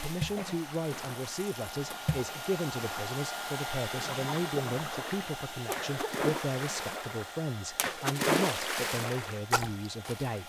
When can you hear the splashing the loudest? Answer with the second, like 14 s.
8 s.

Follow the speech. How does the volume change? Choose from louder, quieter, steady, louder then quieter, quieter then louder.
steady.